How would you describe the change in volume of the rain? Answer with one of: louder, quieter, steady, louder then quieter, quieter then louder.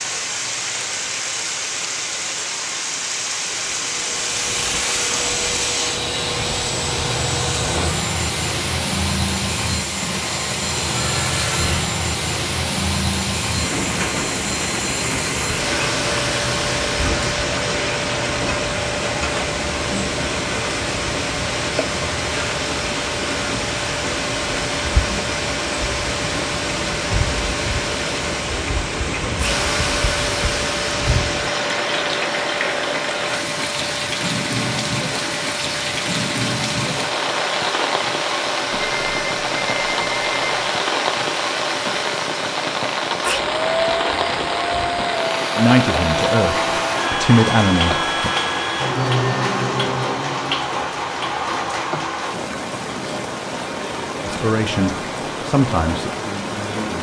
steady.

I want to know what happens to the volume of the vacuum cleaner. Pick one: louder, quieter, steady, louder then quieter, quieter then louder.
steady.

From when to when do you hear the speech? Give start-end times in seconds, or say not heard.
45.5-48.3, 54.2-56.9.